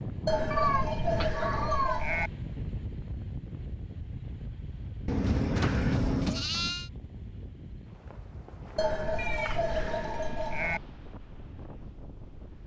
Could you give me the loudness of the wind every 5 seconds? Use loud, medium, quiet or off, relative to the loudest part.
loud, medium, medium.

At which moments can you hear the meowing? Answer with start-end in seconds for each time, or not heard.
0.5-2.1, 5.0-6.5, 9.2-9.8.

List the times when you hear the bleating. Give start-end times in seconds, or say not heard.
0.2-2.3, 5.2-6.9, 8.8-10.8.